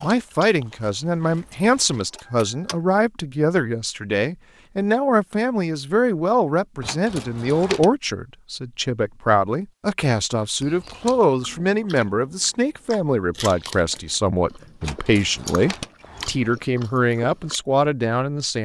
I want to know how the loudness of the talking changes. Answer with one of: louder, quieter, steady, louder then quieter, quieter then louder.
steady.